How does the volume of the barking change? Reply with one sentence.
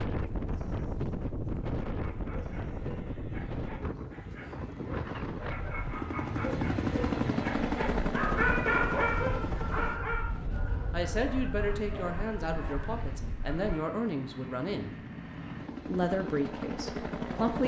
The volume of the barking goes up, then down.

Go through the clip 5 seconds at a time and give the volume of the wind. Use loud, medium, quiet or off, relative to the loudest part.
loud, loud, medium, off.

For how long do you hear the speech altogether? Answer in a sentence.
You can hear the speech for 6 seconds altogether.